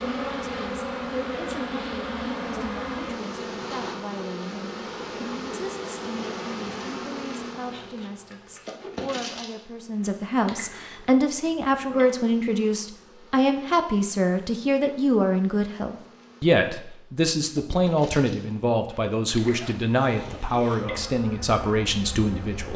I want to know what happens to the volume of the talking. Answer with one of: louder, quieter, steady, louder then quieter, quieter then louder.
louder.